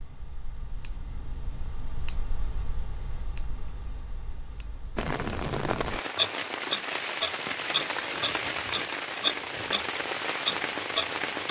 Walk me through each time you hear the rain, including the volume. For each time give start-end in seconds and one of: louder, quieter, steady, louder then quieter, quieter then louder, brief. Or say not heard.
5.0-11.4 steady.